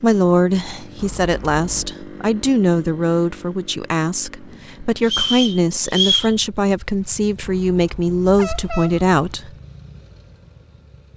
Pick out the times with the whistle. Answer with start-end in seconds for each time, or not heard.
5.0-6.3.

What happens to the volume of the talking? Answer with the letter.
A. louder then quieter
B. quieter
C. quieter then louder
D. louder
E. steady
E.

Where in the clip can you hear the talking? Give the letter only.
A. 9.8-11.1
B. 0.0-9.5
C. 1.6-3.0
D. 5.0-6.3
B.